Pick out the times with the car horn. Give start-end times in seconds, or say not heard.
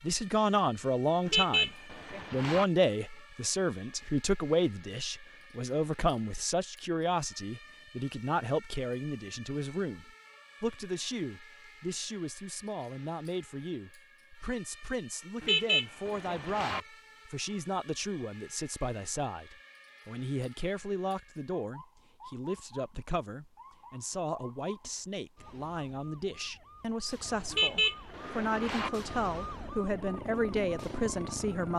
1.2-2.6, 15.4-16.8, 27.5-28.9.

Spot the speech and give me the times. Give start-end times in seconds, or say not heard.
0.0-31.7.